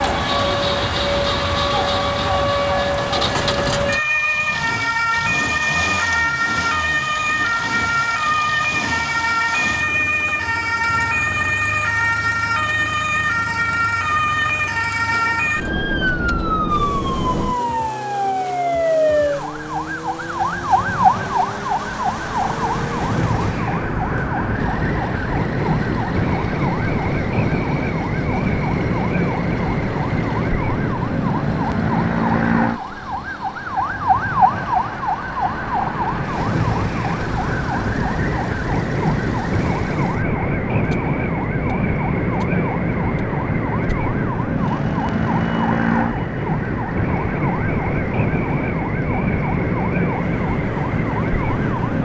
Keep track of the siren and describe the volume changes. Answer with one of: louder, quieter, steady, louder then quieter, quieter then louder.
steady.